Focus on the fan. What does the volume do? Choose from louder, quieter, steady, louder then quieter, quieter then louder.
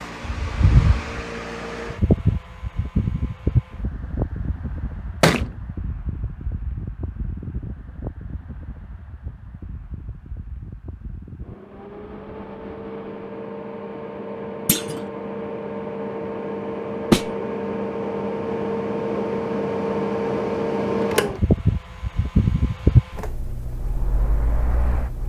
quieter then louder.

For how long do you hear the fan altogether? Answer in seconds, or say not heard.
25 s.